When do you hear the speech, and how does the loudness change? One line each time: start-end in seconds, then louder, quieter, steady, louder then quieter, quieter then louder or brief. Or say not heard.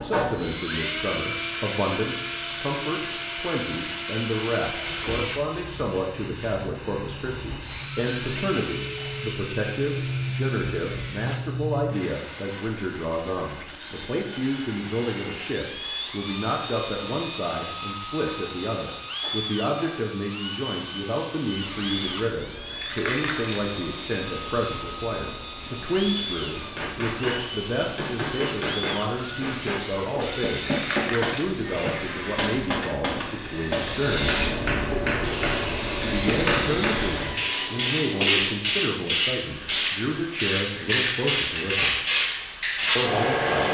0.0-34.4 steady
36.0-42.0 steady
43.0-43.6 brief.